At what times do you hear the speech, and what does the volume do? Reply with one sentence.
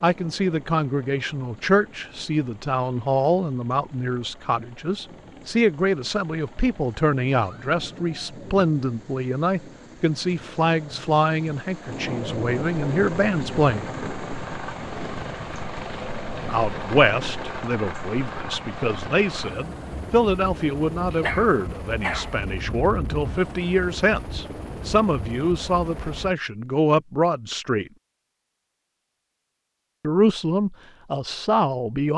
You can hear the speech from 0.0 to 13.9 s, at a steady volume; from 16.4 to 27.9 s, at a steady volume; and briefly from 30.0 to 32.1 s.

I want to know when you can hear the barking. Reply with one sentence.
You can hear the barking from 21.1 to 22.4 s.